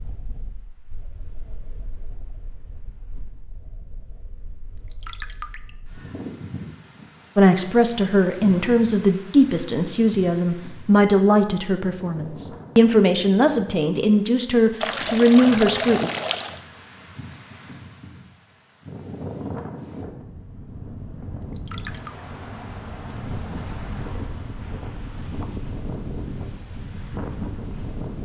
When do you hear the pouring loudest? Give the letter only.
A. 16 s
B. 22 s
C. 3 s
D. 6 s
A.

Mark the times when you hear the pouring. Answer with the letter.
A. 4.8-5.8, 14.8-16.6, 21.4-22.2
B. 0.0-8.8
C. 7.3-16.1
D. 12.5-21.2
A.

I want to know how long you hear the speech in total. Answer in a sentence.
You can hear the speech for 9 seconds altogether.